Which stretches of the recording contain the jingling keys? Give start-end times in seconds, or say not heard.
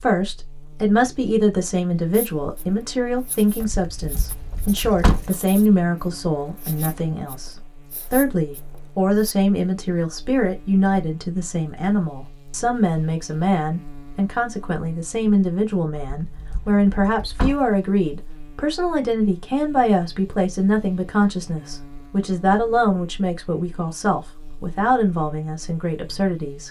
3.6-5.3, 16.2-17.6.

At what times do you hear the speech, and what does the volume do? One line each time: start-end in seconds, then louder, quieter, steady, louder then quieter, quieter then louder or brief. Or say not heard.
0.0-26.6 steady.